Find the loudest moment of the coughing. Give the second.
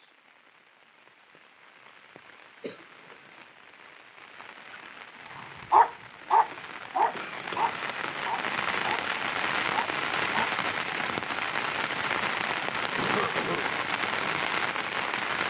13 s.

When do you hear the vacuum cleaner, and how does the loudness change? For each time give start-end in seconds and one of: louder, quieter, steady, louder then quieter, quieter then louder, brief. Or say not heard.
not heard.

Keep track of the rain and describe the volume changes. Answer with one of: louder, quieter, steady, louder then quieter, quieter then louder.
louder.